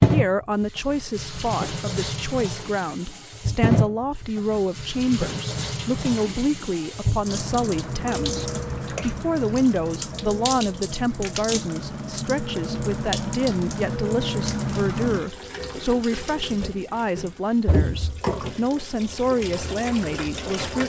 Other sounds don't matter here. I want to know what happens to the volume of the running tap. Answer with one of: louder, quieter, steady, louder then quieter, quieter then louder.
steady.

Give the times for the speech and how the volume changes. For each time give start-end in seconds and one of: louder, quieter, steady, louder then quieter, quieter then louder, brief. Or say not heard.
0.0-20.8 steady.